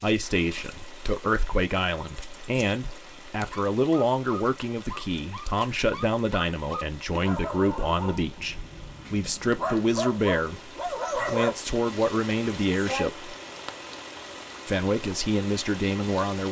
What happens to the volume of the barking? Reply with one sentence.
The loudness of the barking goes up.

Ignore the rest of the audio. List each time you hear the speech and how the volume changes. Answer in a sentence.
The speech can be heard from 0.0 to 13.3 s, at a steady volume; and briefly from 14.7 to 16.4 s.